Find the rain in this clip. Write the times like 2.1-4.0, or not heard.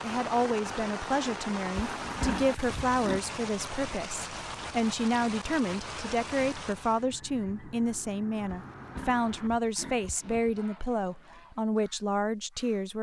0.0-7.0.